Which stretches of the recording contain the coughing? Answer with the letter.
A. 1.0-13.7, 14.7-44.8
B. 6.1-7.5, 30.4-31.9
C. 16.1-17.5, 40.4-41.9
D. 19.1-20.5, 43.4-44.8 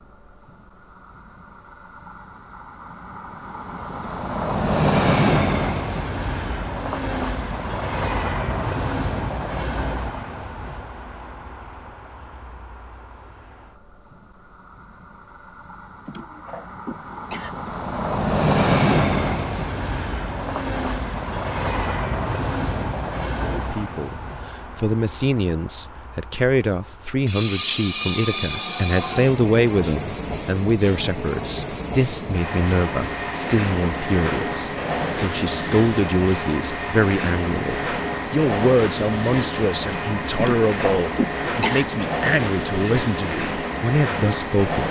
C.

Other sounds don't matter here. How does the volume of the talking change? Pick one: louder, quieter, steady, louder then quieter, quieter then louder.
steady.